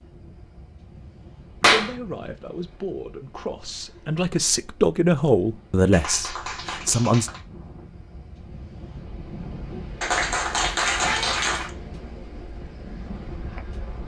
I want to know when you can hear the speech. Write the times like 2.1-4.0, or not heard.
1.6-7.3.